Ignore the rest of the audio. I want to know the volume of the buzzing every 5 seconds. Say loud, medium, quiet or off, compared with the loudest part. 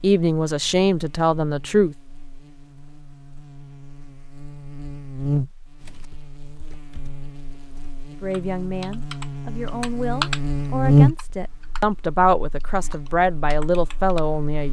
quiet, medium, loud.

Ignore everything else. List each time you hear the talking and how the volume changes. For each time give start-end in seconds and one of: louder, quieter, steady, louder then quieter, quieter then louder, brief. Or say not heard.
0.0-1.9 brief
8.2-14.6 louder.